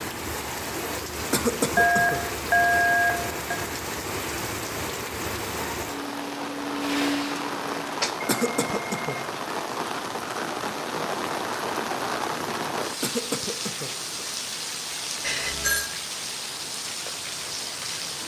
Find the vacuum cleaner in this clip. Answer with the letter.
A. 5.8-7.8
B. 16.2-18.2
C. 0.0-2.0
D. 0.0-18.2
A.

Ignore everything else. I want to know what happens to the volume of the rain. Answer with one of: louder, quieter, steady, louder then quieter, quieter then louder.
steady.